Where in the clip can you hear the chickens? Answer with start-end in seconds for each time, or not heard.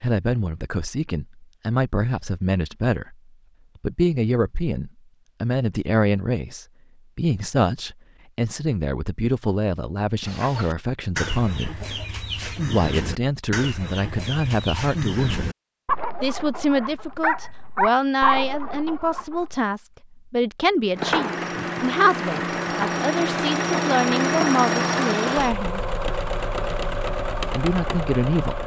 10.2-19.6.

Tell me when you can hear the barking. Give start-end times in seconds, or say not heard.
16.8-18.4.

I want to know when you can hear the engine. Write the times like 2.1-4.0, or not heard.
20.9-28.6.